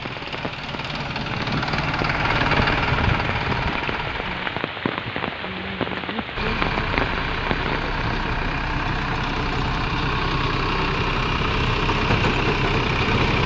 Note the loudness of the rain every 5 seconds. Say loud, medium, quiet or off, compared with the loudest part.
loud, loud, off.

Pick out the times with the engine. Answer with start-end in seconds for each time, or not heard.
0.0-4.7, 6.3-13.4.